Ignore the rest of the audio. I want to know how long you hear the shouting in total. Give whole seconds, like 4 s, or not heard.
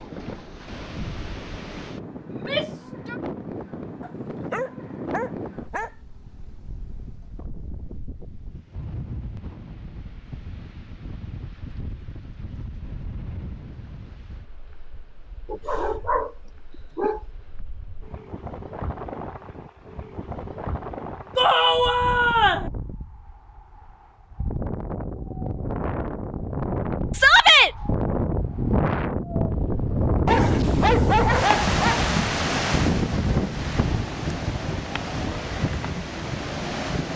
3 s.